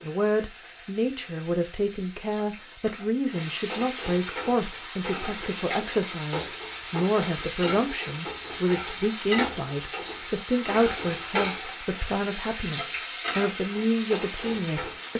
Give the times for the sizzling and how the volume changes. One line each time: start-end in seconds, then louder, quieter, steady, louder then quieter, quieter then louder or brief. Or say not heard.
0.0-15.1 louder.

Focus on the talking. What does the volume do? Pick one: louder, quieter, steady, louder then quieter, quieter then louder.
steady.